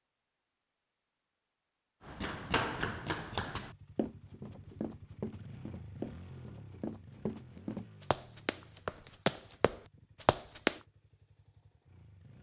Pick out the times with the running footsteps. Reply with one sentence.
You can hear the running footsteps from 2.0 to 10.8 s.